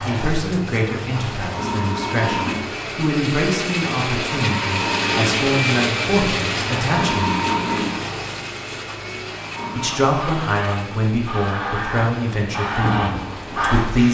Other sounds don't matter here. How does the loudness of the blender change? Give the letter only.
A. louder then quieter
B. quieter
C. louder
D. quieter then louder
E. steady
A.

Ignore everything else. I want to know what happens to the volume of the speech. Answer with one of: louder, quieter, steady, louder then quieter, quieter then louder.
steady.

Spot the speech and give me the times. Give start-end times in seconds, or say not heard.
0.1-7.3, 9.8-14.0.